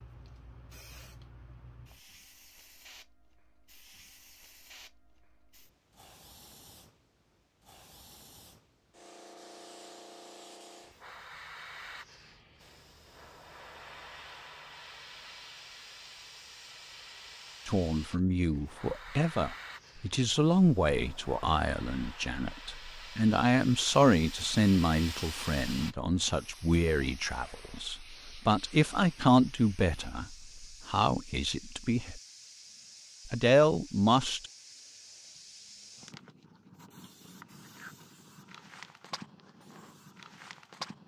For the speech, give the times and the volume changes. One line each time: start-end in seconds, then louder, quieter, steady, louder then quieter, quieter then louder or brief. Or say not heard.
17.6-32.2 steady
33.2-34.5 brief.